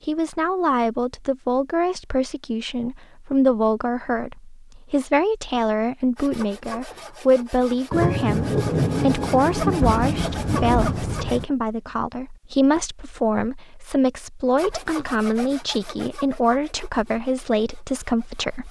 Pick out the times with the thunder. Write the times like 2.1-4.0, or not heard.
7.9-11.4.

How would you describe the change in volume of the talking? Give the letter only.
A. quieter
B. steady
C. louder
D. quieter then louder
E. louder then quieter
B.